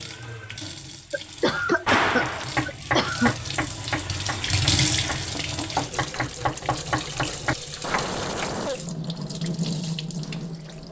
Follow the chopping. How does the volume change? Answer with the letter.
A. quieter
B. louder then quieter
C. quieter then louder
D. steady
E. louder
C.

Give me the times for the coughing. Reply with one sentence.
You can hear the coughing from 1.1 to 3.4 s and from 7.8 to 8.8 s.